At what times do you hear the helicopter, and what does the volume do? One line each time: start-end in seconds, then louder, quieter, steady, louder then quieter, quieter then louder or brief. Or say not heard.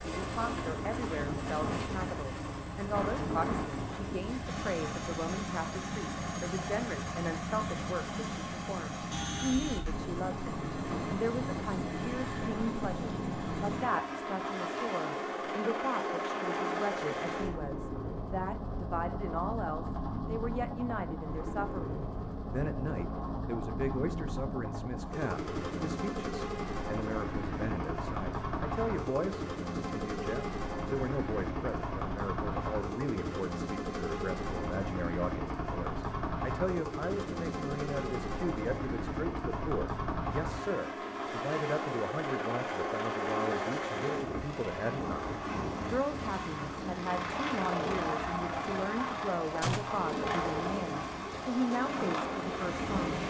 0.0-53.2 steady.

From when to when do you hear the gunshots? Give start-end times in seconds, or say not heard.
49.6-50.0.